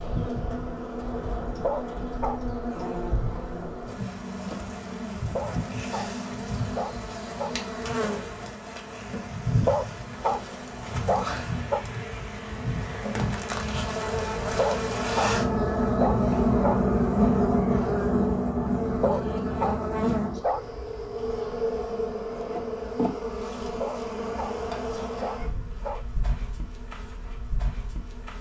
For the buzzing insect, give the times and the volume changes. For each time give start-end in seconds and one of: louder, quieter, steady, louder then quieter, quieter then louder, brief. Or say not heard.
0.0-28.3 louder then quieter.